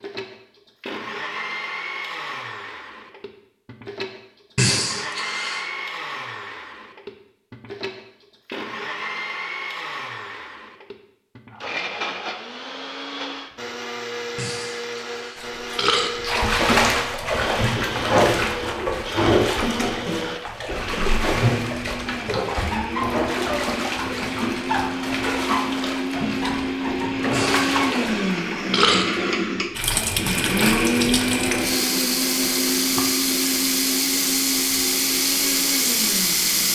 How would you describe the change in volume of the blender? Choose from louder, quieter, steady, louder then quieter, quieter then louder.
louder.